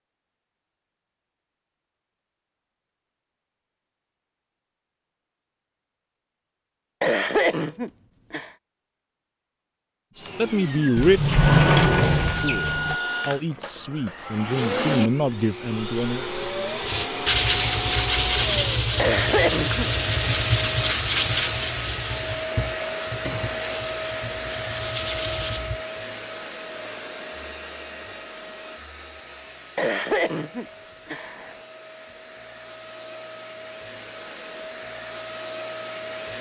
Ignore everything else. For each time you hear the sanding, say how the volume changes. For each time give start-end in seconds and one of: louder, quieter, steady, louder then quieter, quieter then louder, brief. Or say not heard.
16.8-25.8 quieter.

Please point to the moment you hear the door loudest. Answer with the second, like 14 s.
12 s.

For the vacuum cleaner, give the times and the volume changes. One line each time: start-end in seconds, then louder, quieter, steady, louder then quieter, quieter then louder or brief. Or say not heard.
10.2-36.3 quieter.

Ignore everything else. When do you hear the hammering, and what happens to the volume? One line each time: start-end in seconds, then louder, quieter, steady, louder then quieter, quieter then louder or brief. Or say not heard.
not heard.